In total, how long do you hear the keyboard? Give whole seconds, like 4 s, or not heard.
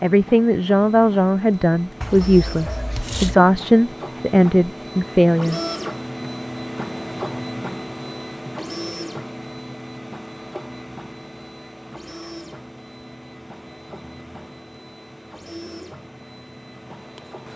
not heard.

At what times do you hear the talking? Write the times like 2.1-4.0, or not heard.
0.0-5.6.